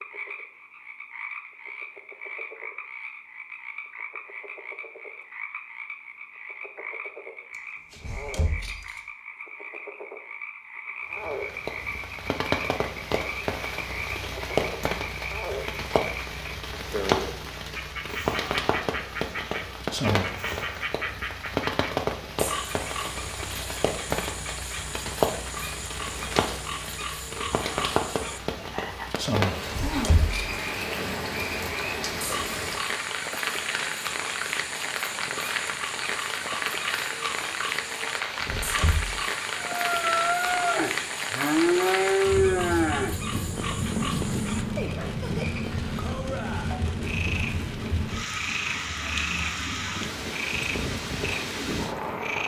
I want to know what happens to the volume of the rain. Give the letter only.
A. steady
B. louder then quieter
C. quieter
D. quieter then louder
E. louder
A.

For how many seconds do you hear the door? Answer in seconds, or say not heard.
3 s.